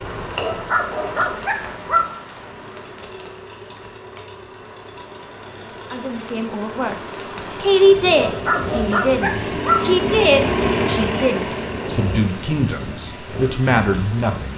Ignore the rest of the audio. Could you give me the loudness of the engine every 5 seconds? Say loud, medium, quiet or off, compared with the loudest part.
quiet, medium, loud.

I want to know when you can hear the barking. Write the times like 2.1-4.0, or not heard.
0.3-2.0, 8.1-9.8.